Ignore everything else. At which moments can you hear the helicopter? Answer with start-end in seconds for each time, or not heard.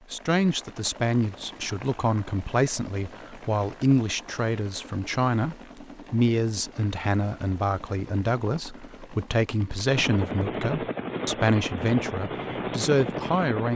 0.0-13.7.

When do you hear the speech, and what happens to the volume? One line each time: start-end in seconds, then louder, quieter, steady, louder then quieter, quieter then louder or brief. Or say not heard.
0.1-13.7 steady.